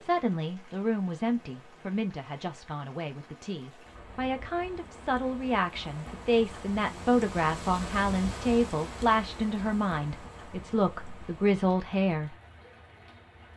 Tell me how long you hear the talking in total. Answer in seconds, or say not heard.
12 s.